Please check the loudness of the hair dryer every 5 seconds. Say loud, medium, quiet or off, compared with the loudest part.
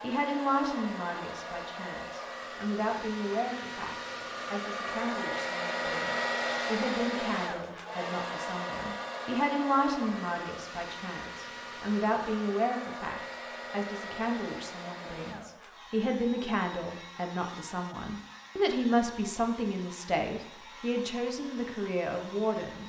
medium, loud, medium, quiet, quiet.